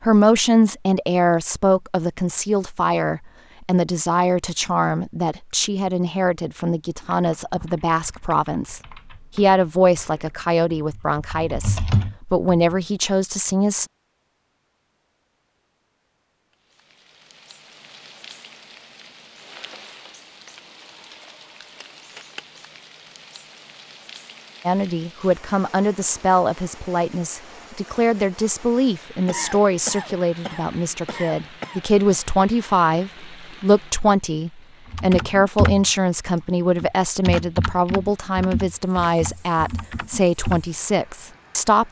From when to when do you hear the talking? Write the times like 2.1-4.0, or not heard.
0.0-13.8, 24.6-41.8.